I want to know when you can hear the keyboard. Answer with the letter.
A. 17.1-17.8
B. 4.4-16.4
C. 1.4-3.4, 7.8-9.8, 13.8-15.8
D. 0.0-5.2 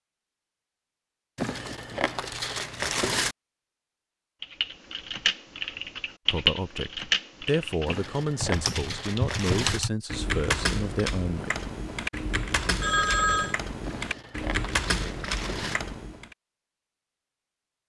B.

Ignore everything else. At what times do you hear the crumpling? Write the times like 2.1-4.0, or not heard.
1.4-3.4, 7.8-9.8, 13.8-15.8.